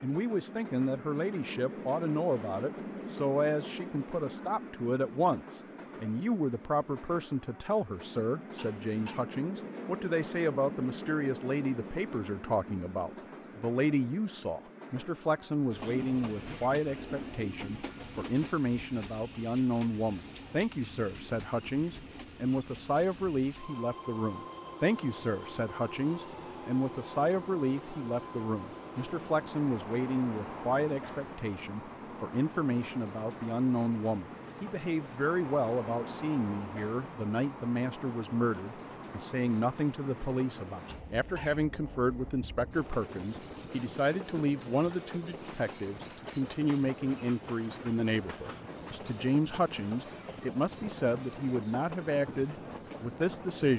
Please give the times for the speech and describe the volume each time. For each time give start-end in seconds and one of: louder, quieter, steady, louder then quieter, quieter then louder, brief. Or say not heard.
0.0-53.7 steady.